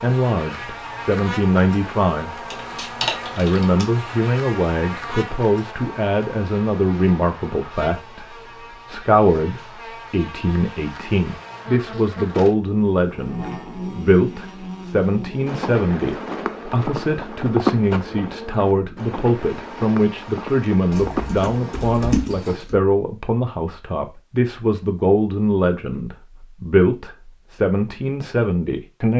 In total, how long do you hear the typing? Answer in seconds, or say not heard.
3 s.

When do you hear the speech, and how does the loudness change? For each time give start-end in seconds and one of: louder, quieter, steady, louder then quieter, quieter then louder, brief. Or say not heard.
0.0-2.5 brief
3.4-29.1 steady.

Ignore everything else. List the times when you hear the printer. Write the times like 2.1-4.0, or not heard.
not heard.